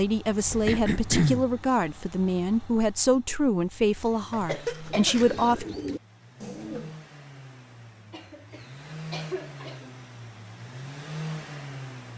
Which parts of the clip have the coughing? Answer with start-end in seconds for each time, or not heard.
0.7-1.4, 4.3-5.7, 8.1-9.9.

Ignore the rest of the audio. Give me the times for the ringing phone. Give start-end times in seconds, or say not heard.
not heard.